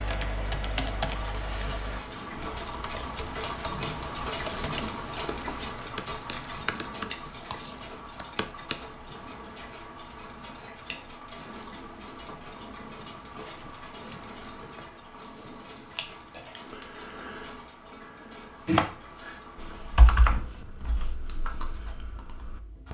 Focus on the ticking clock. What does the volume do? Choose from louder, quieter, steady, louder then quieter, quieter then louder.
quieter.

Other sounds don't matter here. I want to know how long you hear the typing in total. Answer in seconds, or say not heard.
13 s.